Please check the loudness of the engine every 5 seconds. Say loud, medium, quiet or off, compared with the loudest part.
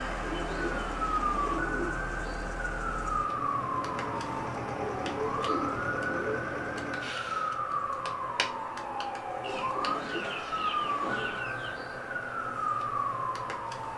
loud, loud, off.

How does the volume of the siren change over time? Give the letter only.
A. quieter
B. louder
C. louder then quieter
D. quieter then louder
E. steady
E.